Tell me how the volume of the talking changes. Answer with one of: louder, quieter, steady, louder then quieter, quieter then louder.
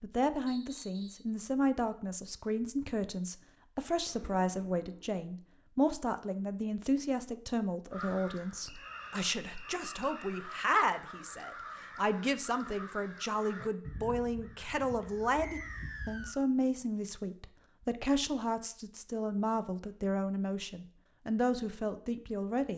steady.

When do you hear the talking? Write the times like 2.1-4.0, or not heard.
0.0-22.7.